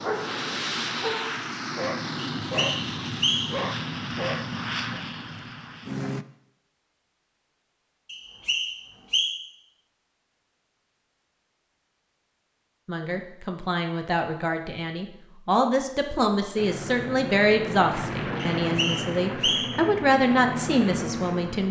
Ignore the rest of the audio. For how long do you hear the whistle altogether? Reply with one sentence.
You can hear the whistle for 4 seconds altogether.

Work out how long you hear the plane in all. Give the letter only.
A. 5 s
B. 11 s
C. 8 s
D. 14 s
B.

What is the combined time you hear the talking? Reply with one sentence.
The talking can be heard for 9 seconds in total.